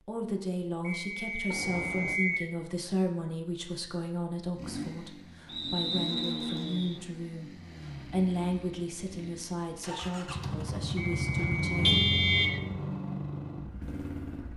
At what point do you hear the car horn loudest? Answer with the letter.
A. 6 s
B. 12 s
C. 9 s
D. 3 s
B.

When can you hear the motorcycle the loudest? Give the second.
12 s.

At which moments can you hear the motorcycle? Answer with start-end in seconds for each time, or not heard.
4.5-14.5.